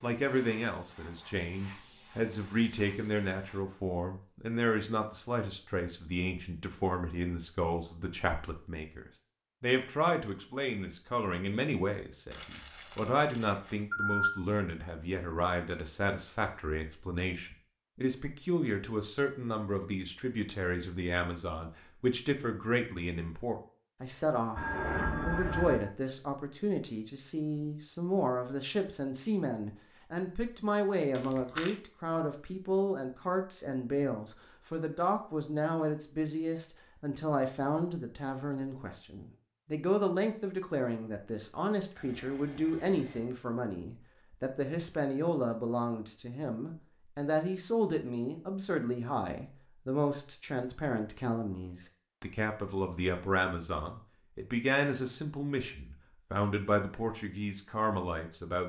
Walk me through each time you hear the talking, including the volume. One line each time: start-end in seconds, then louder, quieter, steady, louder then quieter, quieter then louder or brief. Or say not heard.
0.0-58.6 steady.